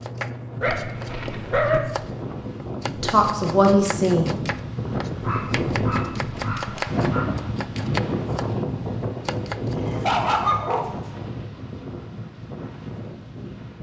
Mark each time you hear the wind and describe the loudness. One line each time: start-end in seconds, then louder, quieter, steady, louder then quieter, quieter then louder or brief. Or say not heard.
0.0-13.7 louder then quieter.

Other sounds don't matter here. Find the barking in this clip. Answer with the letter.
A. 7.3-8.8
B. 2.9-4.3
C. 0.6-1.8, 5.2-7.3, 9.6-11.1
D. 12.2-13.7
C.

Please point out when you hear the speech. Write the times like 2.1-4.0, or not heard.
2.9-4.3.